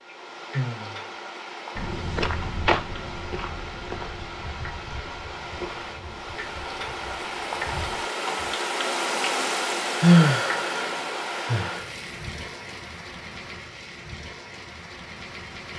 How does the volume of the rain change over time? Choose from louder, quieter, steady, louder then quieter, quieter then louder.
louder then quieter.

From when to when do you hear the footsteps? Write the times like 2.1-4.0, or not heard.
1.8-8.6.